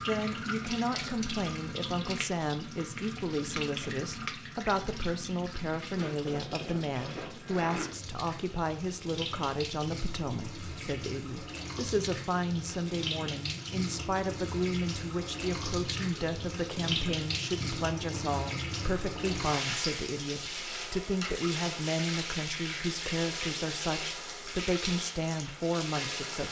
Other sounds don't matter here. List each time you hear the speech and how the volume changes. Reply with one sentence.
The speech can be heard from 0.1 to 26.4 s, at a steady volume.